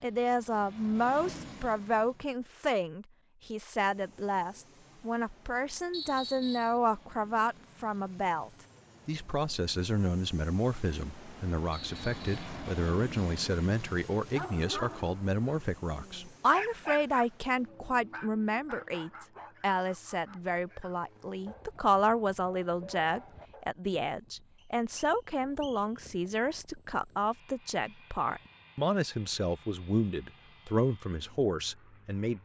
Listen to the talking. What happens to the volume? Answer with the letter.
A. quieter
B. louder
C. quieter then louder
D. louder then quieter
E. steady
E.